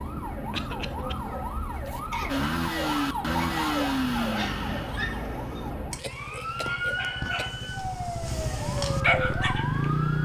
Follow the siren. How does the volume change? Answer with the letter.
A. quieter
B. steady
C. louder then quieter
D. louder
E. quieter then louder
B.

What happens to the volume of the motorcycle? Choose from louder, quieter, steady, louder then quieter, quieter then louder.
quieter then louder.